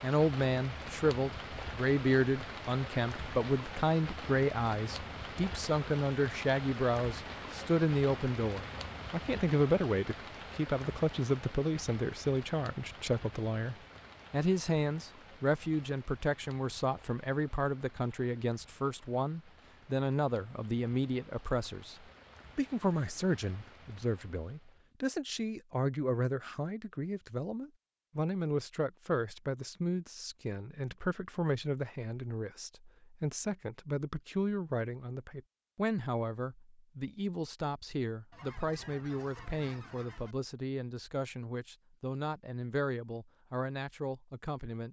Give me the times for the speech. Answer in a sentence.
The speech can be heard from 0.0 to 44.8 s.